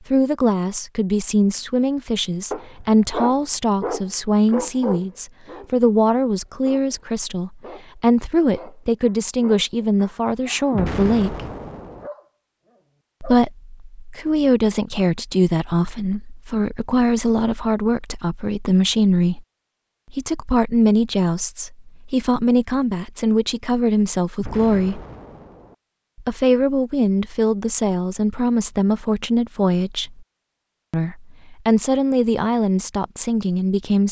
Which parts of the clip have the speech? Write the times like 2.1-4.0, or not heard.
0.1-11.4, 13.2-19.4, 20.1-25.0, 26.2-30.2, 30.9-34.0.